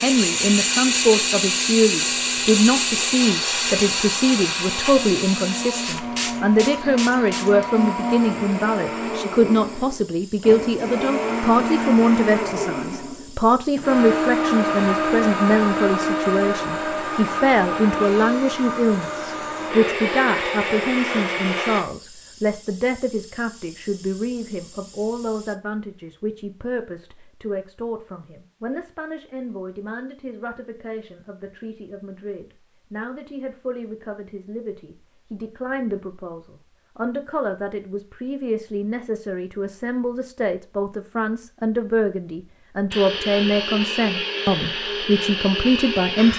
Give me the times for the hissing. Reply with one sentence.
You can hear the hissing from 0.0 to 25.6 s.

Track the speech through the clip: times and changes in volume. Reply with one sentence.
You can hear the speech from 0.0 to 46.3 s, getting quieter then louder.